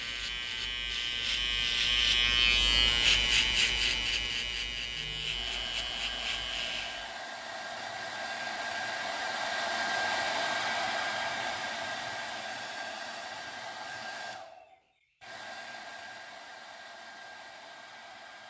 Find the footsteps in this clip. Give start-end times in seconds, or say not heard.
not heard.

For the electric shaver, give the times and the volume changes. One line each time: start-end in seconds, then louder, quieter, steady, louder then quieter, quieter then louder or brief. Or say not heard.
0.0-7.2 louder then quieter.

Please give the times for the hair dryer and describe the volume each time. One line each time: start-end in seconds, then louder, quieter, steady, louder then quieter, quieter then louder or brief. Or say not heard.
5.2-18.4 louder then quieter.